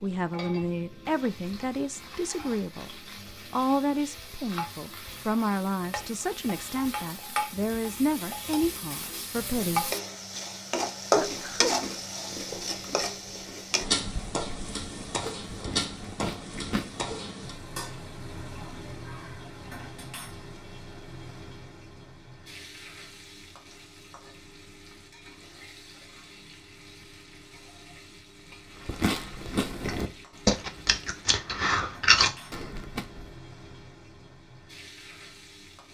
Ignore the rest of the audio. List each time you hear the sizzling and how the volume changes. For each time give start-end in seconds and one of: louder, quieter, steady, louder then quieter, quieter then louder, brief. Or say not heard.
0.0-35.9 louder then quieter.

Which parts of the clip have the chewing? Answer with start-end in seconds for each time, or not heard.
11.1-17.1, 28.9-33.2.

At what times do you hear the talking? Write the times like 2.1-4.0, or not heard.
0.0-9.9, 11.2-11.7.